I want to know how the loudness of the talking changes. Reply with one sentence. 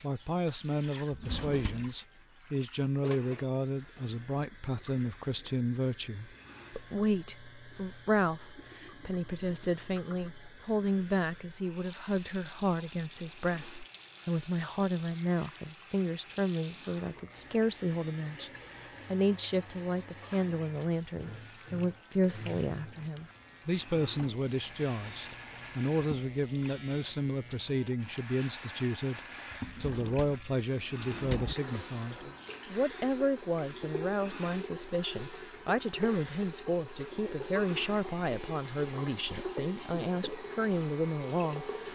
The volume of the talking stays about the same.